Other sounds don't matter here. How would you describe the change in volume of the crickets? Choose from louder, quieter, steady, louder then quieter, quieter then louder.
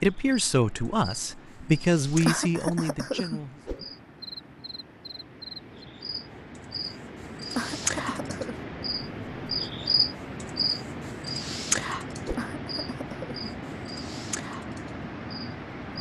louder then quieter.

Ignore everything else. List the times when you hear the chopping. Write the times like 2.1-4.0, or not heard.
not heard.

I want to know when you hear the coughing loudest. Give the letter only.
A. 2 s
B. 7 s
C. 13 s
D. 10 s
A.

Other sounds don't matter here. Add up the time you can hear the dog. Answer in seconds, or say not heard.
not heard.